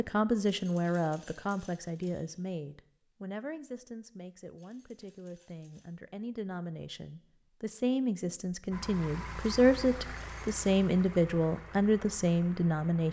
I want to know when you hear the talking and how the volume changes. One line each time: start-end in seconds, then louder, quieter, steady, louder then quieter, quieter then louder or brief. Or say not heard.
0.0-13.0 quieter then louder.